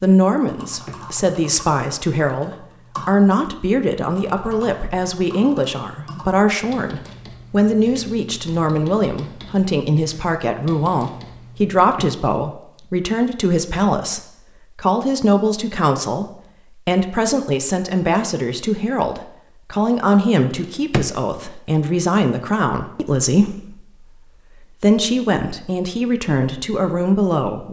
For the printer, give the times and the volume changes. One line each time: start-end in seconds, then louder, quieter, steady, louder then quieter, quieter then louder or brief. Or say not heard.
not heard.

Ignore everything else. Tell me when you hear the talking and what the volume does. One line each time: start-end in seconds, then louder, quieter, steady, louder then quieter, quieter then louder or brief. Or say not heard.
0.0-27.6 steady.